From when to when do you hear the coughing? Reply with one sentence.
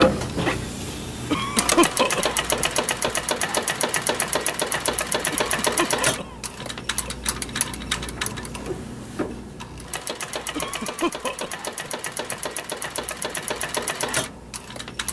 The coughing can be heard from 1.3 to 3.1 s, from 5.3 to 7.2 s and from 10.6 to 12.3 s.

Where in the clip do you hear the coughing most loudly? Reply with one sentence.
The volume of the coughing peaks at 2 seconds.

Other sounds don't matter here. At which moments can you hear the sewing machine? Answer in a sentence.
You can hear the sewing machine from 0.0 to 15.0 s.